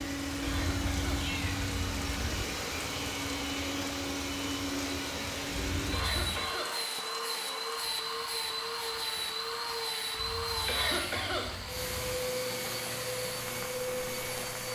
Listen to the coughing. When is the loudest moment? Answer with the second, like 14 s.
11 s.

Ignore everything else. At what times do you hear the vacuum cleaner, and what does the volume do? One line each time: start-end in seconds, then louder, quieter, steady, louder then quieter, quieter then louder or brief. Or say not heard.
0.0-14.7 steady.